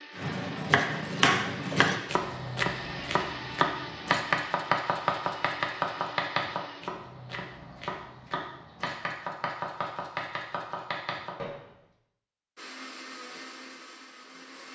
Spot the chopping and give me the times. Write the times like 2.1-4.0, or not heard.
0.1-11.6.